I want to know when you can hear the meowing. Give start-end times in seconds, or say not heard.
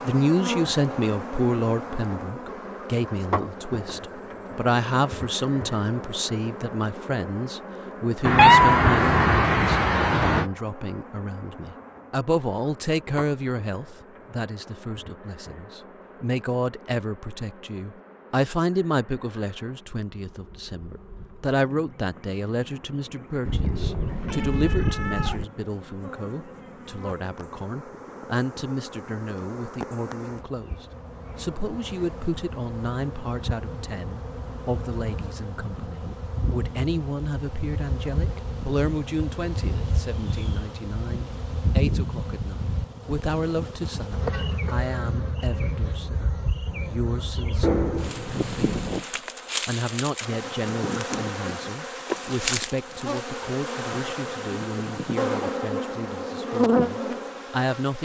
8.2-10.4, 23.4-25.4, 47.6-49.0.